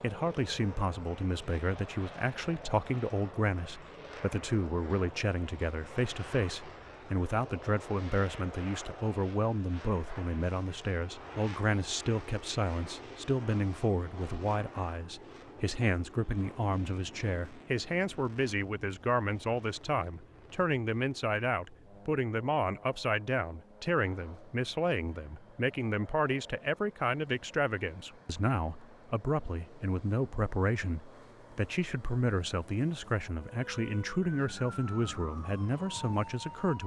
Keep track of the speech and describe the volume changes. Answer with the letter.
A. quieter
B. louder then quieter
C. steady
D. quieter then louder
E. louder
C.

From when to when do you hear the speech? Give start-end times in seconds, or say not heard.
0.0-36.8.